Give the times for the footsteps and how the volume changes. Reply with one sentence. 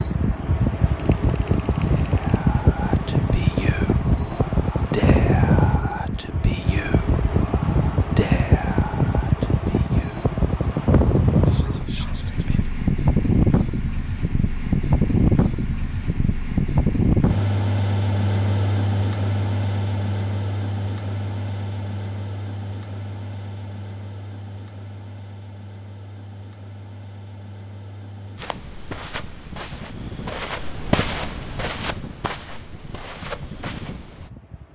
The footsteps can be heard from 28.4 to 34.3 s, getting louder then quieter.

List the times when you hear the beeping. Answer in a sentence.
The beeping can be heard from 0.9 to 2.4 s.